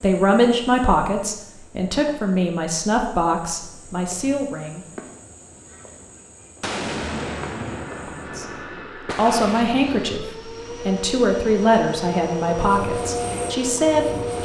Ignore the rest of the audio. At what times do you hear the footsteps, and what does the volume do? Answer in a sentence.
The footsteps can't be heard in this clip.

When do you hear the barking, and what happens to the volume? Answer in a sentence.
You can't hear the barking here.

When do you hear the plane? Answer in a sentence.
The plane can be heard from 7.7 to 14.4 s.